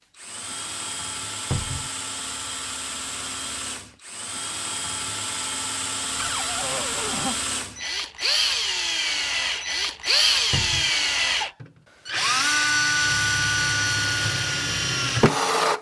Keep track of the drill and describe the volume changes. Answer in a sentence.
The volume of the drill goes up.